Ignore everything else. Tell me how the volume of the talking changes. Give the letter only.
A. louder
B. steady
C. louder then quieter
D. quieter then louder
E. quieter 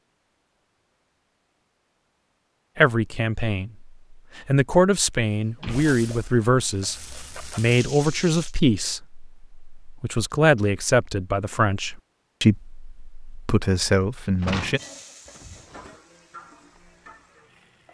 B.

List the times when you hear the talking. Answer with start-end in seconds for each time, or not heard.
2.8-14.8.